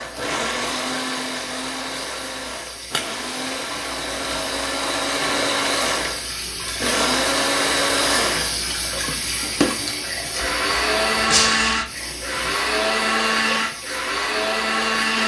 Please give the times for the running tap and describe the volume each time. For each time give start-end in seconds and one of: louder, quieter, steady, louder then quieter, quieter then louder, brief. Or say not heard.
0.0-15.2 louder then quieter.